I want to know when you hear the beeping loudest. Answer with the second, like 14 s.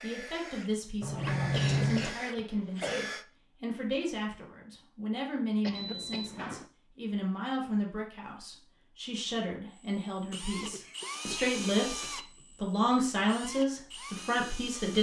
2 s.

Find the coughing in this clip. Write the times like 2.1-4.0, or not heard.
1.5-3.0, 5.6-6.3, 10.3-12.4.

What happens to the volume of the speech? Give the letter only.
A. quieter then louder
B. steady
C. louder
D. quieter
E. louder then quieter
C.